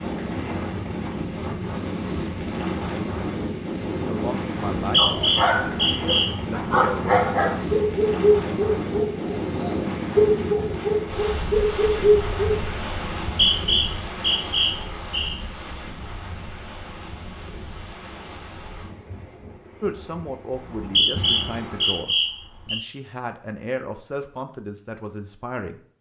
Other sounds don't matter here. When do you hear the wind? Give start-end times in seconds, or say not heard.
0.0-22.1.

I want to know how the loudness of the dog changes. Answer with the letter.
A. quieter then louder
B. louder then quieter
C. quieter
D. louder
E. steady
D.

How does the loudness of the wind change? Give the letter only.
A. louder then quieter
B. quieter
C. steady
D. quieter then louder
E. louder
B.